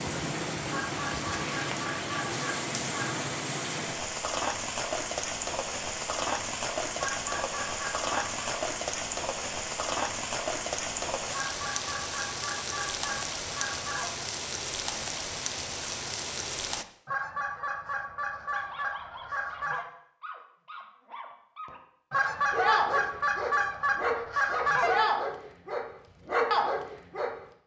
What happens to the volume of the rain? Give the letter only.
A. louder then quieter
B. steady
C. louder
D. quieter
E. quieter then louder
B.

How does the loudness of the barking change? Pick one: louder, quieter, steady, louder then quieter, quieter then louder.
louder.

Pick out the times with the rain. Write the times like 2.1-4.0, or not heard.
0.0-16.9.